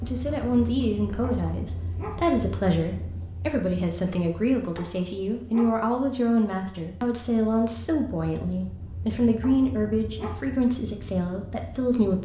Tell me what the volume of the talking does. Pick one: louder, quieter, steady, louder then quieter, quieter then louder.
steady.